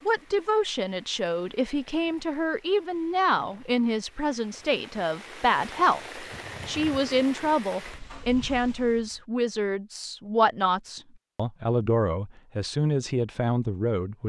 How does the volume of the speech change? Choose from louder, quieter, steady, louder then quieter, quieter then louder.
steady.